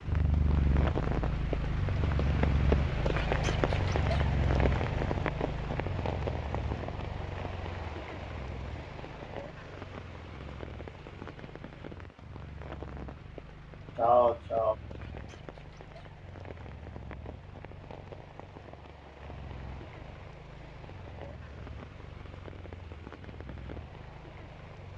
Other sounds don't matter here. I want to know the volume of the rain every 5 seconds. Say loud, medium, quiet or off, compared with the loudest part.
loud, medium, quiet, quiet, quiet.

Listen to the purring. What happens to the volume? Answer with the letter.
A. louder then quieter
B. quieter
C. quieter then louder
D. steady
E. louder
B.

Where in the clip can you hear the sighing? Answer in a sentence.
The sighing can be heard from 13.9 to 14.8 s.